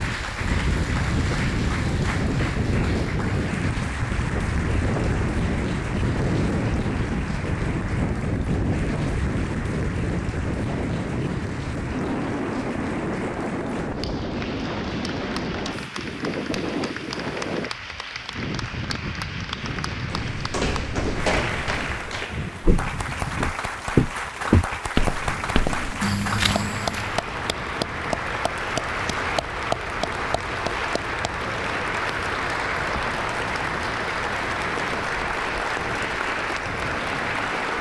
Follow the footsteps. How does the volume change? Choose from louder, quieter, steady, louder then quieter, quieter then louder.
louder then quieter.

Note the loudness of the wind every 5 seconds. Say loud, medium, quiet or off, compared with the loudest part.
loud, loud, loud, medium, medium, quiet, quiet, quiet.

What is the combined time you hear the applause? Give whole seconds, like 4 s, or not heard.
38 s.